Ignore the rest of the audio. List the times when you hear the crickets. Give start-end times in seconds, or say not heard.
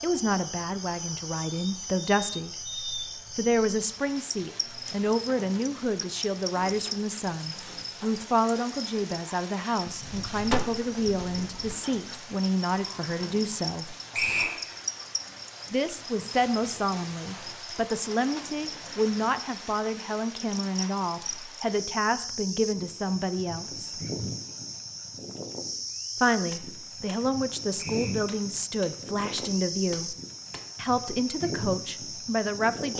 0.0-32.9.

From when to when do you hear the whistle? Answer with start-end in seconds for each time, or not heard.
14.1-14.6, 27.8-28.2.